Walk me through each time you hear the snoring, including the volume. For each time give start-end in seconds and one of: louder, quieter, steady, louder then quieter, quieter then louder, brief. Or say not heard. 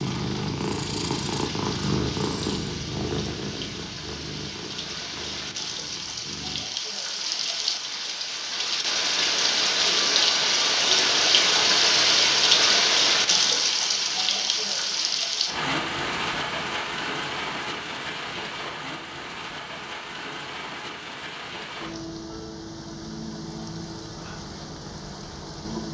not heard.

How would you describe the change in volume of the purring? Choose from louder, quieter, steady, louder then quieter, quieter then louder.
quieter.